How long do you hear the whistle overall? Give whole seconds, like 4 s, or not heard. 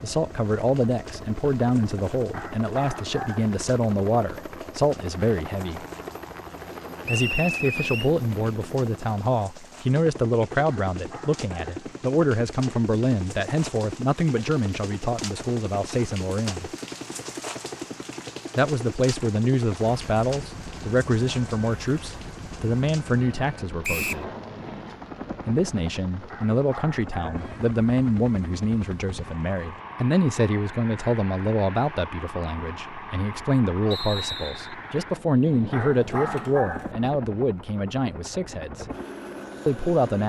2 s.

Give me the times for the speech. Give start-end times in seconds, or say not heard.
0.0-5.8, 7.0-16.7, 18.6-24.3, 25.4-38.9, 39.6-40.2.